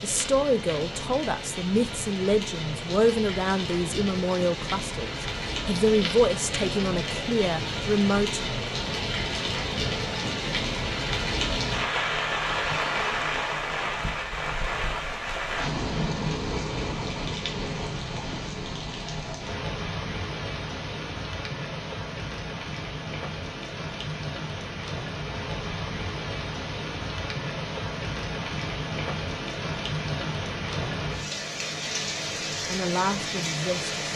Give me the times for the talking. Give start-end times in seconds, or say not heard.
0.0-8.4, 32.6-34.0.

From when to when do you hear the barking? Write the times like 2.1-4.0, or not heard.
not heard.